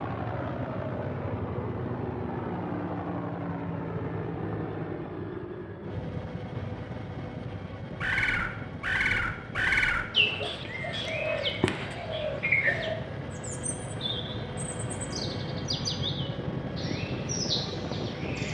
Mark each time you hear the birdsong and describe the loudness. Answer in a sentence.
You can hear the birdsong from 8.0 to 18.4 s, getting quieter.